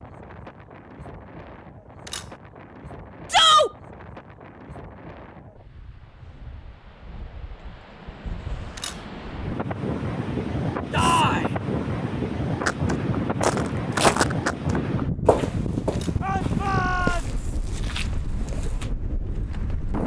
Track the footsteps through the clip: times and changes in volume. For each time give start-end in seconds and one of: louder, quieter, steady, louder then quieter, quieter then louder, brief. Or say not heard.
12.7-18.9 quieter.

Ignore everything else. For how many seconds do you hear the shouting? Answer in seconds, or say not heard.
2 s.